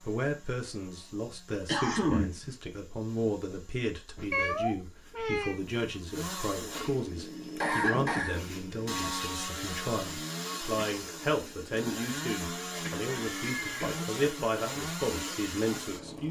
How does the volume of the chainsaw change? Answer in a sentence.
The volume of the chainsaw goes up.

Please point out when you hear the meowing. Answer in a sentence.
You can hear the meowing from 4.3 to 5.6 s and from 13.1 to 13.8 s.